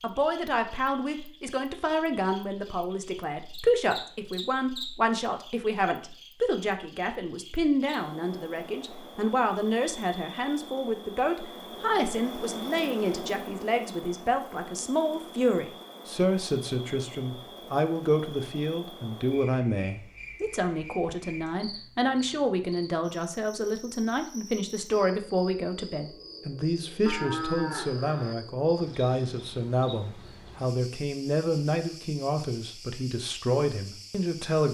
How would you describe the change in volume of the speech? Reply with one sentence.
The loudness of the speech stays about the same.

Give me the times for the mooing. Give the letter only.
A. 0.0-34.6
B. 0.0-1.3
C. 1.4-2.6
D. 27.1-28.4
D.